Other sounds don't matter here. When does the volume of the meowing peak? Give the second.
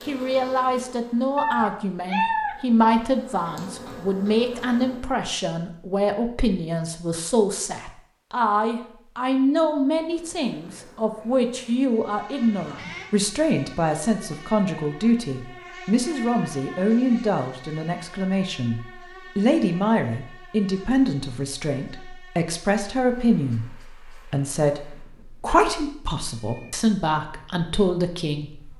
2 s.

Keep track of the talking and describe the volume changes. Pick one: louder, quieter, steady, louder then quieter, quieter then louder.
steady.